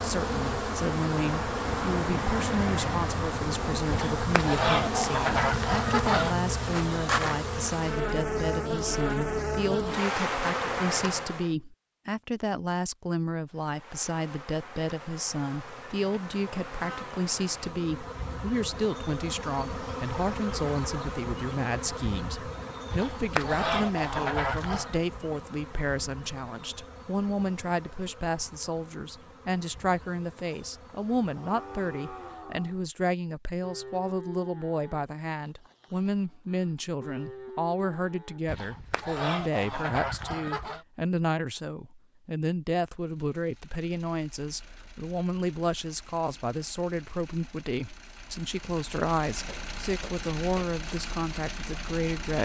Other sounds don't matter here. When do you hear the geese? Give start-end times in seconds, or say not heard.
3.9-6.3, 22.9-25.0, 38.5-40.9.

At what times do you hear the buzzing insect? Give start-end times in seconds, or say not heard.
0.0-11.6, 13.4-32.6.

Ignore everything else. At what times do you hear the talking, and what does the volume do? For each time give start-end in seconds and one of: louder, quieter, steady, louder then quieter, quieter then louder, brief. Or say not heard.
0.0-52.4 steady.